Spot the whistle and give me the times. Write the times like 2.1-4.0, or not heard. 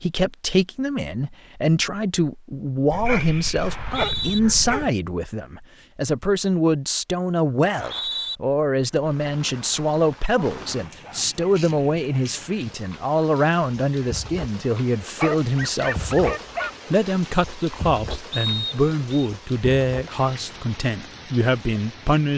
3.6-4.4, 7.6-8.3, 18.3-19.3.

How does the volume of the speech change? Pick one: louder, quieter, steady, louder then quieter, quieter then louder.
steady.